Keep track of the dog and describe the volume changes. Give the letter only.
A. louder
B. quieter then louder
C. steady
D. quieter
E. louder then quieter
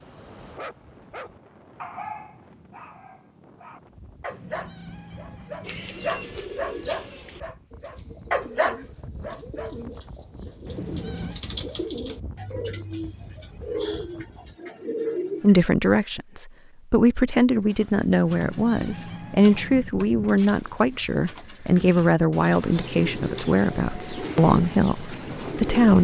B.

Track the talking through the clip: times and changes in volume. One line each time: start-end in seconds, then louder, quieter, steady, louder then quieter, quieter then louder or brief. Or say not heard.
15.4-25.9 steady.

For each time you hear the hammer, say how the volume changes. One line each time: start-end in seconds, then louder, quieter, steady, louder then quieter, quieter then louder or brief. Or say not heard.
not heard.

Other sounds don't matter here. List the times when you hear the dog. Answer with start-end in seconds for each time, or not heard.
0.0-9.8.